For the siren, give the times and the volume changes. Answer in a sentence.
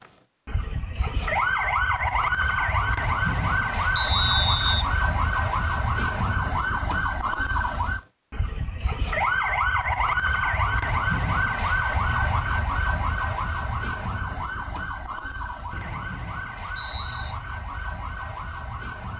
The siren can be heard from 0.0 to 19.1 s, getting quieter.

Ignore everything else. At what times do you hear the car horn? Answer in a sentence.
The car horn can't be heard in this clip.